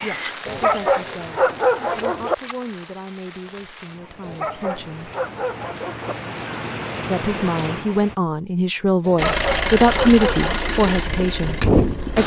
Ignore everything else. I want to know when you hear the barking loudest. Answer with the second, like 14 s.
2 s.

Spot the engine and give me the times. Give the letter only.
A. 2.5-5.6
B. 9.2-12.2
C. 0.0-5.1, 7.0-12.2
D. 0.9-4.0
B.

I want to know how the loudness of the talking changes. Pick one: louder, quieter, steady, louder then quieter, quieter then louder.
louder.